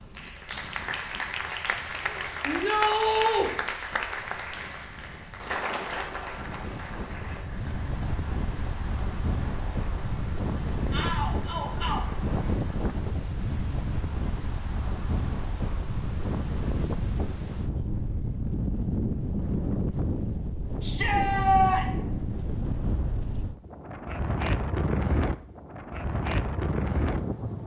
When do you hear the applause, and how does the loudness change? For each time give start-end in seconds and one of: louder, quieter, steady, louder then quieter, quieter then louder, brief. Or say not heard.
0.0-12.8 quieter.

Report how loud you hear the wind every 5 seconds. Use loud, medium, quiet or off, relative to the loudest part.
quiet, medium, loud, loud, loud, loud.